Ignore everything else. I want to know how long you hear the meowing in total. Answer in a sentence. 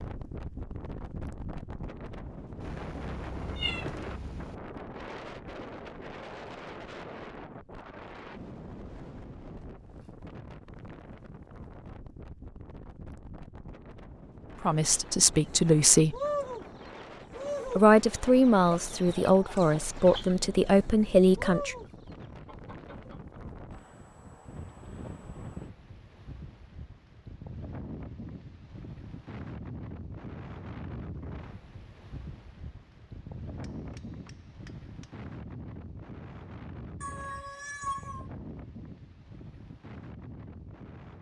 You can hear the meowing for 3 seconds altogether.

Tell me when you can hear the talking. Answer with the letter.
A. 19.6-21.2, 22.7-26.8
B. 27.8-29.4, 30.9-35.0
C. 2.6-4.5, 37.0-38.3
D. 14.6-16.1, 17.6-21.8
D.